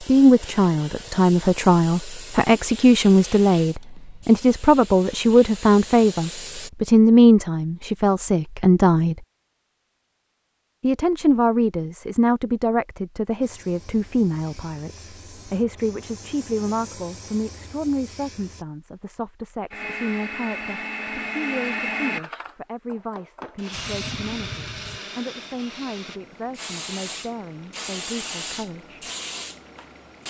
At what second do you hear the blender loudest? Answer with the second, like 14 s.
22 s.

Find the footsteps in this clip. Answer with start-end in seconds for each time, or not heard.
not heard.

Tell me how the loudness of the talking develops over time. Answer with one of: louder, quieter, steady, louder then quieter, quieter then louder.
quieter.